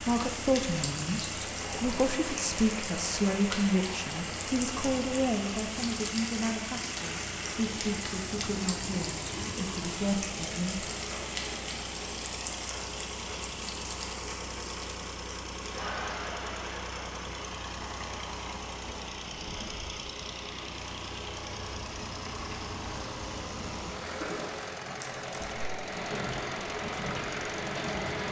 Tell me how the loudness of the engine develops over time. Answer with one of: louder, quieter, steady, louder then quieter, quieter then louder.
steady.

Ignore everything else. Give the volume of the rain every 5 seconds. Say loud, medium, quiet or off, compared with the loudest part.
loud, loud, loud, medium, medium, loud.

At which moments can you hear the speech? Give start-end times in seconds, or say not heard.
0.0-10.9.